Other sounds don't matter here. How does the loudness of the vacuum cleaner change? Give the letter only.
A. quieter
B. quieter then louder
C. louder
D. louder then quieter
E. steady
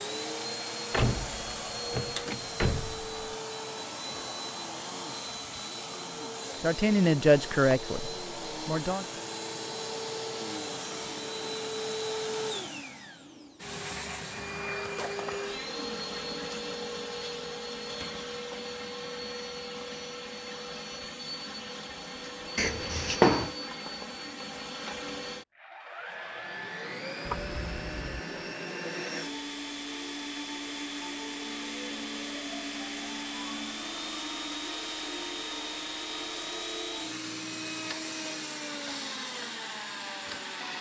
E.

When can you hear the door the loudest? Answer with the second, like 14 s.
23 s.